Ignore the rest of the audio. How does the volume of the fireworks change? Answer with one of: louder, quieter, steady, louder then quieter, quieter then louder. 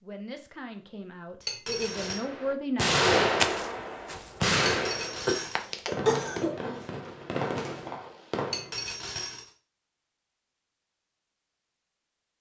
quieter.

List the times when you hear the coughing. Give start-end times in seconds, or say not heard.
5.2-6.8.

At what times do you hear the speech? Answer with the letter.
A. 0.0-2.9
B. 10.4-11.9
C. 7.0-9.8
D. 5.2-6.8
A.